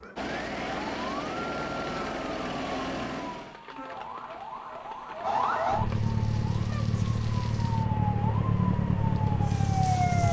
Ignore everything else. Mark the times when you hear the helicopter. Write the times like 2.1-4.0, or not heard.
0.0-3.6.